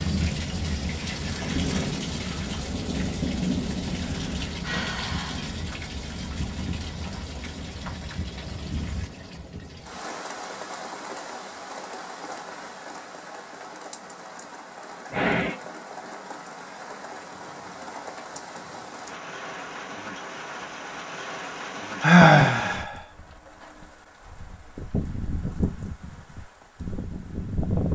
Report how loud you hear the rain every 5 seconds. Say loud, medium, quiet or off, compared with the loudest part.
loud, medium, medium, medium, medium, loud.